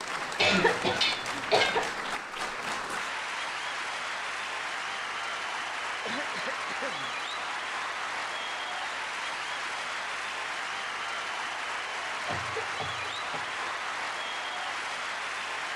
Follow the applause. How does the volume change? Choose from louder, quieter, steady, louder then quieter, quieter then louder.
steady.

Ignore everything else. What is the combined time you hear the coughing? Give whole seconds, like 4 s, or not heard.
4 s.